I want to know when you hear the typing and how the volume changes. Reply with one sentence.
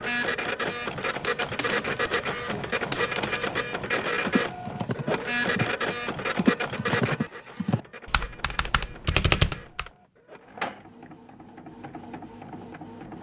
You can hear the typing from 0.8 to 9.9 s, getting louder.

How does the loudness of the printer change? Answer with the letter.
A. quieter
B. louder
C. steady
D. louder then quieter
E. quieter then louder
E.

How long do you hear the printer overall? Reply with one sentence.
The printer can be heard for 13 seconds in total.